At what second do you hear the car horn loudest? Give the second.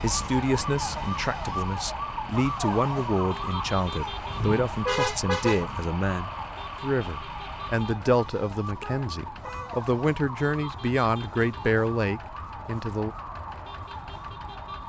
5 s.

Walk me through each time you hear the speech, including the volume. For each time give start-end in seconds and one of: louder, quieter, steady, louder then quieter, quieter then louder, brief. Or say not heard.
0.0-13.2 steady.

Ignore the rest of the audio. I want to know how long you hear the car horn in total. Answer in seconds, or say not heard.
3 s.